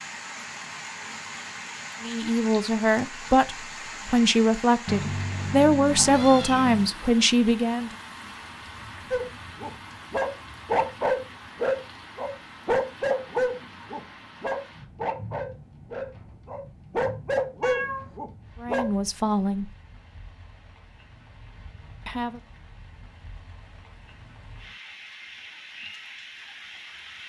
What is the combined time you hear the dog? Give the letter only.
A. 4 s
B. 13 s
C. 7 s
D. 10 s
D.